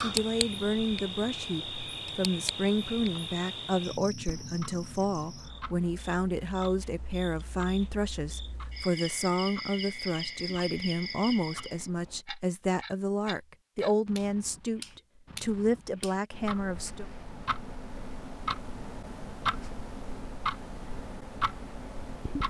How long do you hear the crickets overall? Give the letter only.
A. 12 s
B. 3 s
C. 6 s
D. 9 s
A.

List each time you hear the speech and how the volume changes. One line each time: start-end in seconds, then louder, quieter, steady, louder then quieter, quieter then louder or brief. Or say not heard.
0.0-17.1 steady.